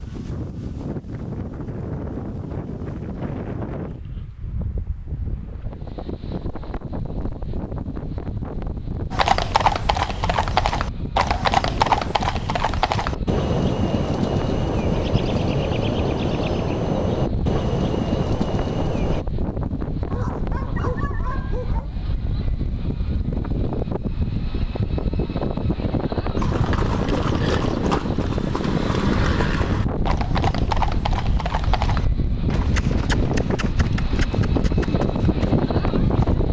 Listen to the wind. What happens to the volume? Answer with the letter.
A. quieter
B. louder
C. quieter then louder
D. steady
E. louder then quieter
B.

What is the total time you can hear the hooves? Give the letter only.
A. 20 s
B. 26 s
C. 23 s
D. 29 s
A.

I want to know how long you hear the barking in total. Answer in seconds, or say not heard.
2 s.